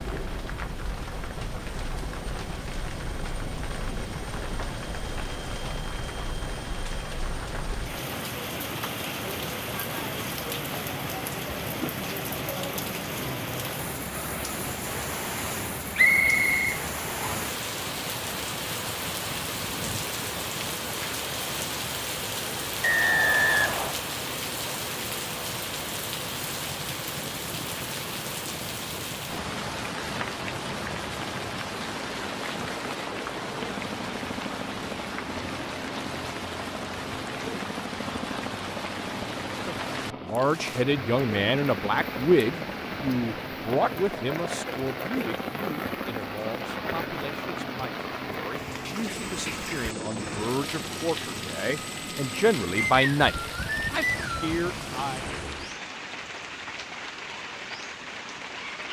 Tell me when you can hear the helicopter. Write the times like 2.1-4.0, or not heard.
0.0-55.8.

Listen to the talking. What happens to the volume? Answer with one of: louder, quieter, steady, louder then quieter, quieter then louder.
quieter then louder.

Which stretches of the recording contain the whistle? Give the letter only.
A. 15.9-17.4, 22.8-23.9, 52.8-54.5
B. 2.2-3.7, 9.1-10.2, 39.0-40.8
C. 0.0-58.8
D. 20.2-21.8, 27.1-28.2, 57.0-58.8
A.